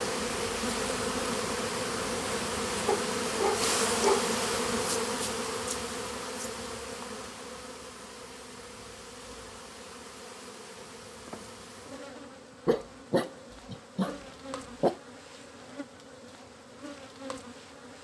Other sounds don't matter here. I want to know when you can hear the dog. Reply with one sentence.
The dog can be heard from 2.9 to 4.3 s and from 12.7 to 14.9 s.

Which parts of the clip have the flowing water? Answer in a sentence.
The flowing water can't be heard in this clip.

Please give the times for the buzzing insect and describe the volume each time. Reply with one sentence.
You can hear the buzzing insect from 0.0 to 18.0 s, getting quieter.